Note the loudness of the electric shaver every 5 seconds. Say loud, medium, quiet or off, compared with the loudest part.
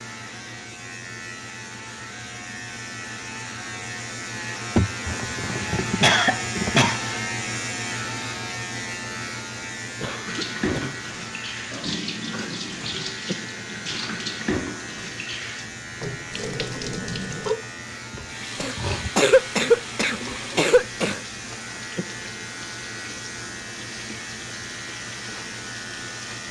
medium, loud, medium, medium, medium, medium.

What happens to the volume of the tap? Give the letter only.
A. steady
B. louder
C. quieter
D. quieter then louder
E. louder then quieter
C.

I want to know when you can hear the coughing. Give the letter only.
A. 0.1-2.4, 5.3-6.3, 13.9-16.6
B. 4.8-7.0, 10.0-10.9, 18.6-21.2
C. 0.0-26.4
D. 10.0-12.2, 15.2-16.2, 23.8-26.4
B.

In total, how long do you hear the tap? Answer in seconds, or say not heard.
16 s.